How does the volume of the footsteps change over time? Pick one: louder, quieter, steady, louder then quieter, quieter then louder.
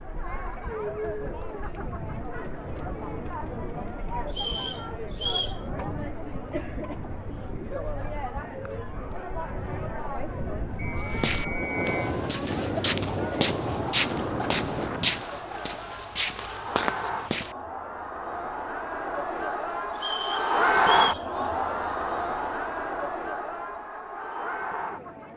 louder.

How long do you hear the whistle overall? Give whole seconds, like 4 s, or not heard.
4 s.